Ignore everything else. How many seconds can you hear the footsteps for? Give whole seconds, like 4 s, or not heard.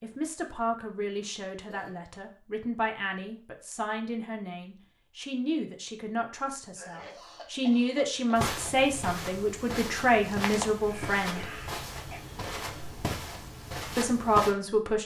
6 s.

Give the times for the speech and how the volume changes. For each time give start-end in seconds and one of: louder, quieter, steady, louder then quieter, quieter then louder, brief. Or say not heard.
0.0-11.4 louder
13.9-15.0 brief.